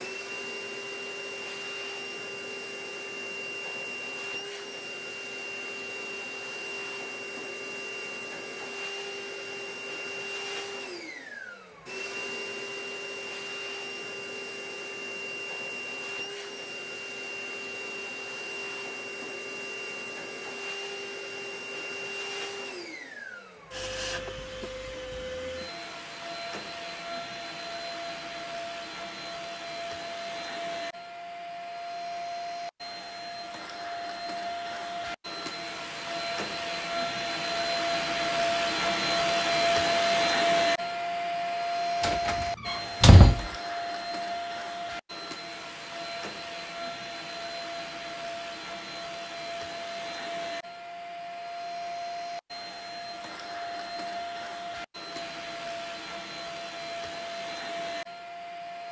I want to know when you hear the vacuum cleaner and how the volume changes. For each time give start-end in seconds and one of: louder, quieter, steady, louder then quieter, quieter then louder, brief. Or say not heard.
0.0-58.8 louder then quieter.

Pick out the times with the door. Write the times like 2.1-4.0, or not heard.
42.0-43.5.